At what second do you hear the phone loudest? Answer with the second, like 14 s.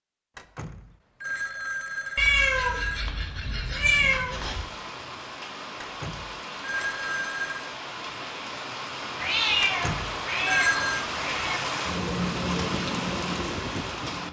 11 s.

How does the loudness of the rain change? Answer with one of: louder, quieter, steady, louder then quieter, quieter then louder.
louder.